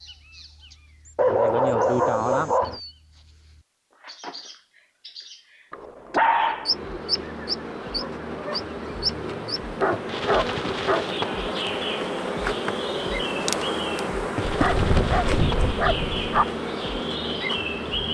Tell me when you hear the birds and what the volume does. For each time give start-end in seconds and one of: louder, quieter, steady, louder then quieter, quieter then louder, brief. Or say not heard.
0.0-18.1 louder.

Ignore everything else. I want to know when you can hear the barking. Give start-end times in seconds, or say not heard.
1.1-2.8, 5.7-6.8, 9.8-11.1, 14.4-16.4.